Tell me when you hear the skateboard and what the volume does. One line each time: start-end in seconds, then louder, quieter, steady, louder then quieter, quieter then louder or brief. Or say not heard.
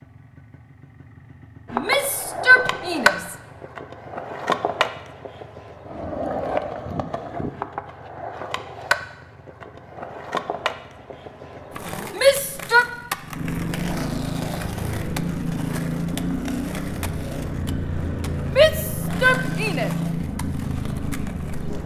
1.6-21.8 quieter.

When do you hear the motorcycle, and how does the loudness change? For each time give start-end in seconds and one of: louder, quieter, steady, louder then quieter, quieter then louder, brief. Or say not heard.
0.0-21.8 louder.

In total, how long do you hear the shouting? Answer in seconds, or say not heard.
4 s.